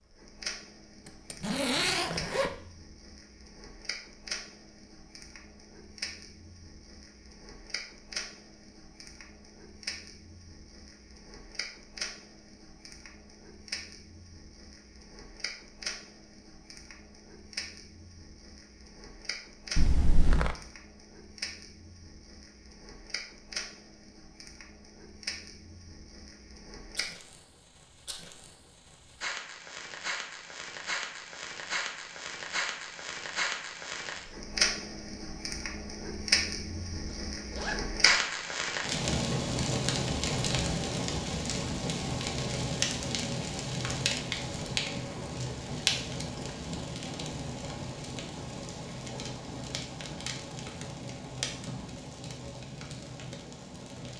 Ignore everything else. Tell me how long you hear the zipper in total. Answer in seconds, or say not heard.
3 s.